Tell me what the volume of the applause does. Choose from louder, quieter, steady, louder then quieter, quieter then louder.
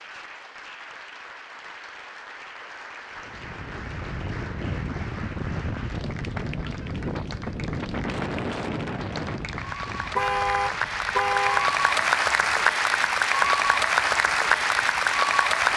louder.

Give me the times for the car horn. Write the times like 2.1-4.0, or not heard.
10.2-11.7.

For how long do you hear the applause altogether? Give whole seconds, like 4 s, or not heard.
16 s.